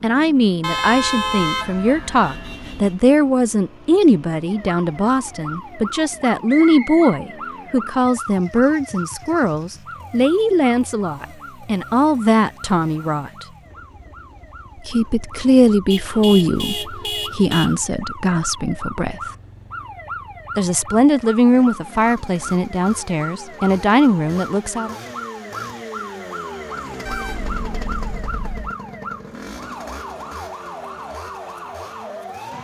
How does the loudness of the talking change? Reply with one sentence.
The loudness of the talking stays about the same.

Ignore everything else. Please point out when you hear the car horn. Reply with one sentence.
The car horn can be heard from 0.6 to 3.0 s, from 15.9 to 17.8 s and from 27.1 to 28.8 s.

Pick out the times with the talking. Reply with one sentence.
You can hear the talking from 0.0 to 13.4 s, from 14.8 to 19.2 s and from 20.6 to 24.9 s.